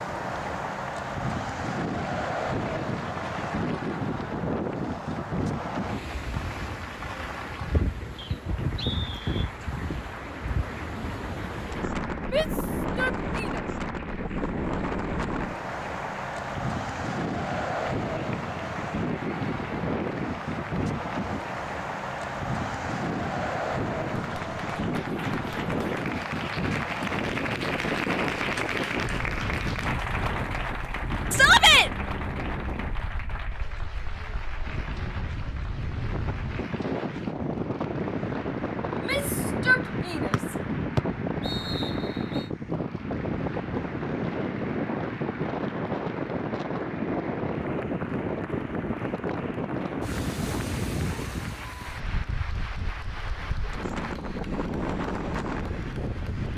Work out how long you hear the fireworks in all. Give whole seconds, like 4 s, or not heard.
not heard.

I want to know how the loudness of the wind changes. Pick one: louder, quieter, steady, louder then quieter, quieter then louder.
steady.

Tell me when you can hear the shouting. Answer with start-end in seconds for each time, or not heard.
12.3-13.6, 31.3-31.9, 38.9-40.4.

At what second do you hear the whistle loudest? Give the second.
41 s.